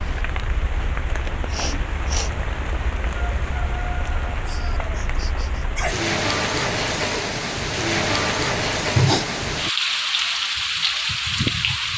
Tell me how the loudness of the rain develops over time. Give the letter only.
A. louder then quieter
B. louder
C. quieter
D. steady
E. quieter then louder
B.